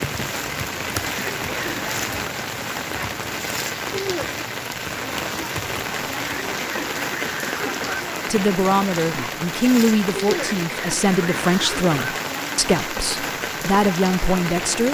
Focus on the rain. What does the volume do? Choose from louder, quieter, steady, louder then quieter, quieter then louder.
steady.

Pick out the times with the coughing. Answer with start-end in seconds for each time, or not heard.
1.0-1.9, 6.3-8.1, 10.2-12.1.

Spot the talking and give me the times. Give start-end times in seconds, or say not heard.
8.2-14.8.